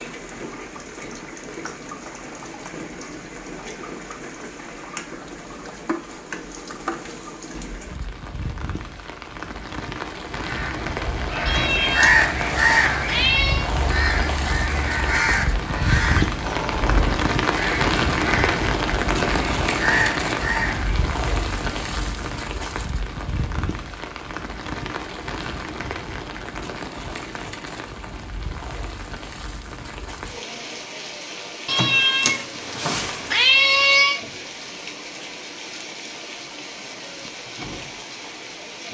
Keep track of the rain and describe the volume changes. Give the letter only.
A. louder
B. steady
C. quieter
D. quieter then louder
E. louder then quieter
E.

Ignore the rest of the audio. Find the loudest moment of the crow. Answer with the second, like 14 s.
12 s.